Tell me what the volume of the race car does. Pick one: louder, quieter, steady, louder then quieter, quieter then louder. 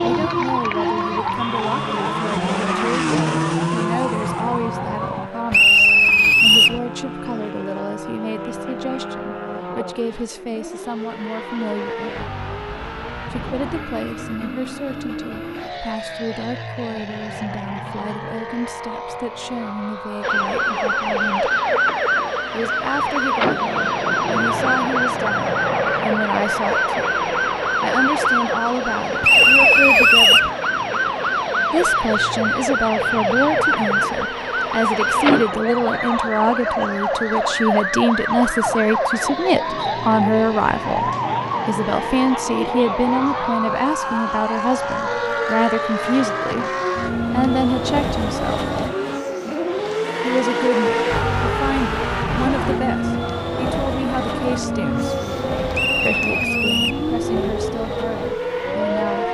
quieter then louder.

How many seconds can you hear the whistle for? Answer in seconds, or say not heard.
4 s.